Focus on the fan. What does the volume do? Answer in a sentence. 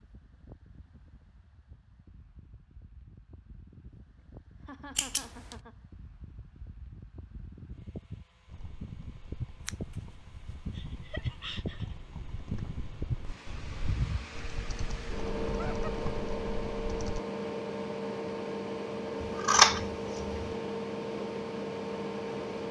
The volume of the fan goes up.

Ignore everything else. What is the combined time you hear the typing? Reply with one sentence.
The typing can be heard for 9 seconds in total.